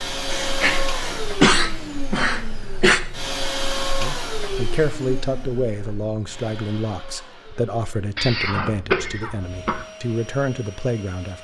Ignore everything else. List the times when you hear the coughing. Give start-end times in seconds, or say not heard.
0.3-3.0, 8.2-9.8.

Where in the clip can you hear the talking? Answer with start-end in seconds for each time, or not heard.
4.0-11.3.